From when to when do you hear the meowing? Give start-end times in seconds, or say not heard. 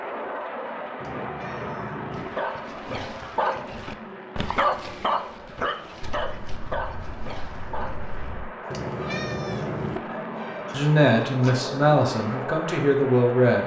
1.0-2.3, 8.7-10.0.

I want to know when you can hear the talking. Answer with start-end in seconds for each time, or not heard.
10.7-13.6.